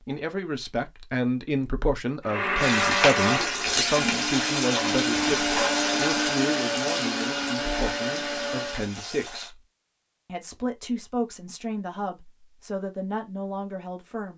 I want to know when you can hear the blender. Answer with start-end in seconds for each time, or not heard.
2.2-8.9.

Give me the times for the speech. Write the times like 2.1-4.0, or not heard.
0.0-9.6, 10.2-14.3.